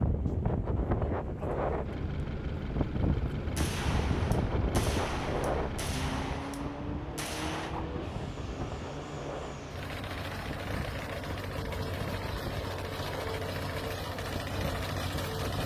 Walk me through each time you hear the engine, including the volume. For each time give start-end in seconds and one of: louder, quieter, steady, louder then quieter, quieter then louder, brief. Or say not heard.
1.8-15.6 louder.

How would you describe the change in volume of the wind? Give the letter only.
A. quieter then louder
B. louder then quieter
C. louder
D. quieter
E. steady
D.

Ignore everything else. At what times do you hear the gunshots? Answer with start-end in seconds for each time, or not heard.
3.5-7.8.